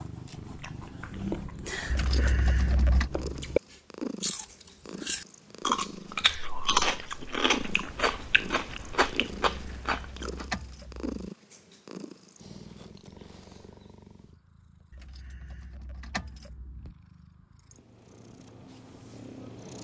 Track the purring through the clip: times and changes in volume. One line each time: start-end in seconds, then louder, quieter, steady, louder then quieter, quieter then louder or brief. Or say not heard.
0.0-19.7 quieter.